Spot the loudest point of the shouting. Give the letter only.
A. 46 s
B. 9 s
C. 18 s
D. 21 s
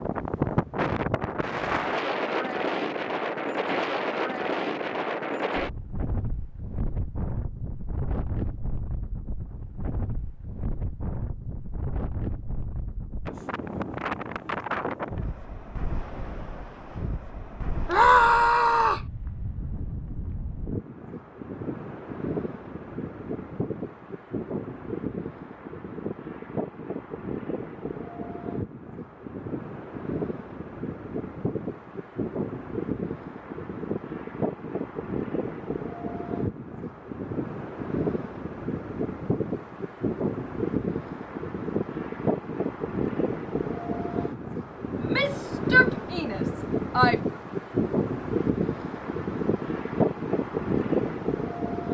C.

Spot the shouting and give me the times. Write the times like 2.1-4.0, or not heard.
17.9-19.1, 45.0-47.2.